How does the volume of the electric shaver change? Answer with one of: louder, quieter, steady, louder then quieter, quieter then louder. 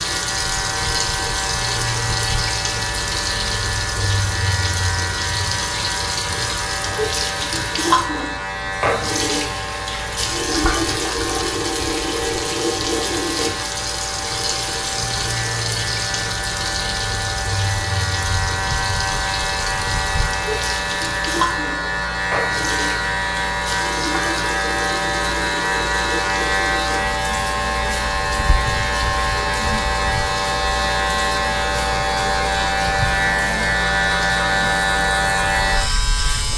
louder.